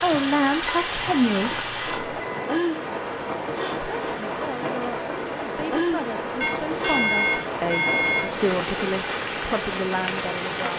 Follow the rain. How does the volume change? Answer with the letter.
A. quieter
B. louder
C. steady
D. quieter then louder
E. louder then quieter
C.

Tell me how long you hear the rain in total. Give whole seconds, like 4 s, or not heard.
11 s.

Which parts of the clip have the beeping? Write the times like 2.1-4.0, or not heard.
0.7-2.5, 6.4-8.3.